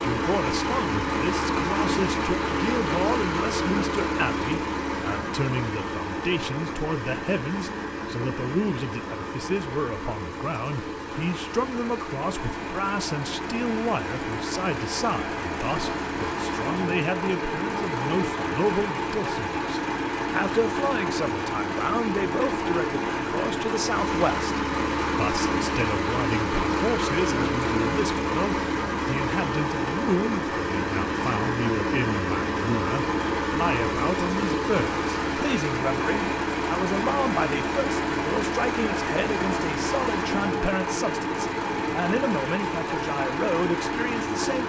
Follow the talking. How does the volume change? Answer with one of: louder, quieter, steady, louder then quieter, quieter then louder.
steady.